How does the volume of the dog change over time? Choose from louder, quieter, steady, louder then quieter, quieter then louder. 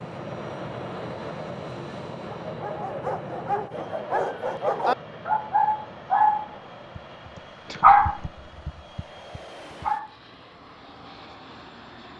louder then quieter.